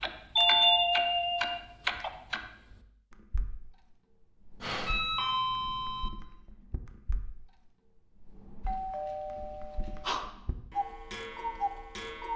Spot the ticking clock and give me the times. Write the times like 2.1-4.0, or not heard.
0.0-12.3.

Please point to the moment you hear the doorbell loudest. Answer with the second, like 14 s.
1 s.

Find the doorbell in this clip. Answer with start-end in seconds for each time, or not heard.
0.3-2.1, 4.6-6.1, 8.7-10.2.